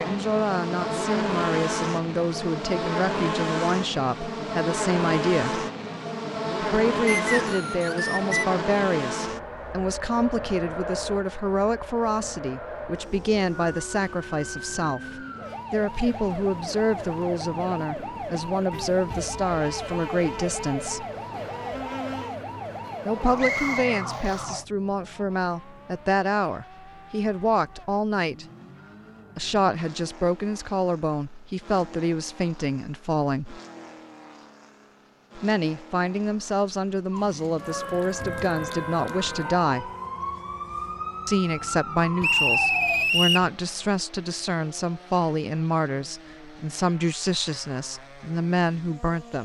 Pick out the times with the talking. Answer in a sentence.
You can hear the talking from 0.1 to 5.7 s, from 6.6 to 21.1 s, from 23.1 to 28.4 s, from 29.4 to 33.6 s, from 35.4 to 39.9 s and from 41.2 to 49.4 s.